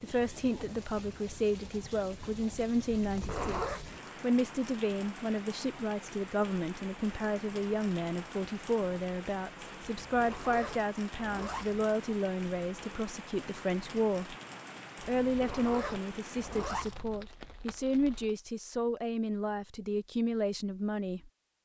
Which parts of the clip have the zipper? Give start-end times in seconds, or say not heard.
2.9-3.9, 10.1-11.9, 15.2-17.2.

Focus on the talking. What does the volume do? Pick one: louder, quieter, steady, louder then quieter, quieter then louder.
steady.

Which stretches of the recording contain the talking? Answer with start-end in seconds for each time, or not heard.
0.0-14.3, 15.1-21.3.